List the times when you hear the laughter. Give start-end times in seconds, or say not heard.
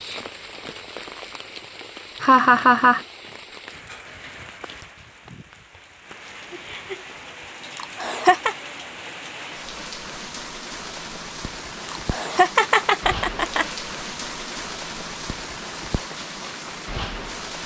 2.2-3.0, 7.8-8.6, 11.9-13.7.